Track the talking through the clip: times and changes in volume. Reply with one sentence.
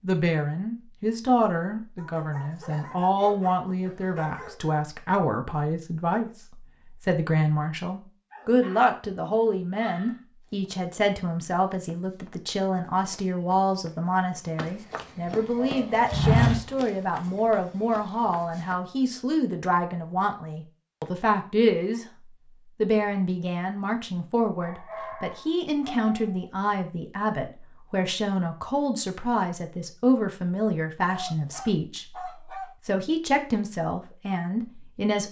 The talking can be heard from 0.0 to 22.1 s, at a steady volume; and from 22.8 to 35.2 s, at a steady volume.